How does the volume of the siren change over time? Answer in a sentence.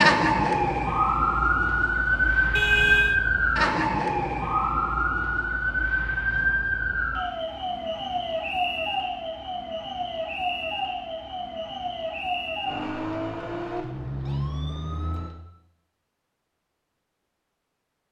The loudness of the siren goes down.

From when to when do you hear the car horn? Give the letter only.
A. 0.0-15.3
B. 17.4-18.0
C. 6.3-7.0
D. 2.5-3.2
D.